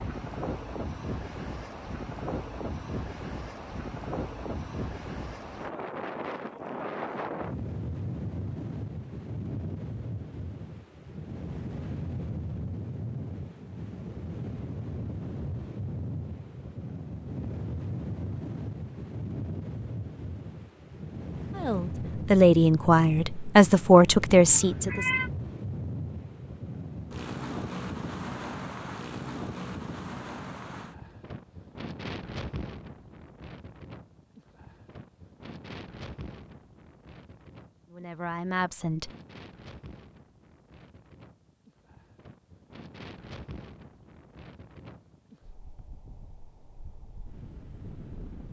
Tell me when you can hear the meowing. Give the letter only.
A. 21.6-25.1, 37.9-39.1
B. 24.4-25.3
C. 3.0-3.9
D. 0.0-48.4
B.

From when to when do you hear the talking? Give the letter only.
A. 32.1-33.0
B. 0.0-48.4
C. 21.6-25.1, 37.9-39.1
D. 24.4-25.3
C.